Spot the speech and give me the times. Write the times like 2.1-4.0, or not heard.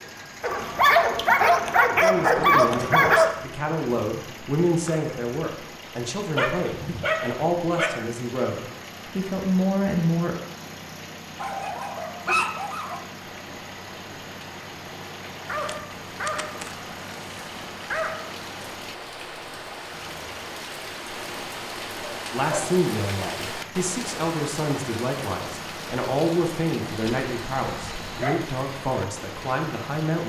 2.0-10.3, 22.3-30.2.